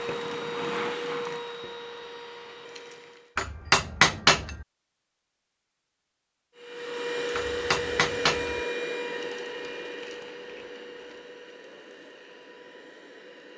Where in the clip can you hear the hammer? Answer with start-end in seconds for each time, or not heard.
3.4-4.7, 7.3-8.6.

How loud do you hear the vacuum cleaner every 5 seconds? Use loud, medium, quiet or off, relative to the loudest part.
loud, loud, quiet.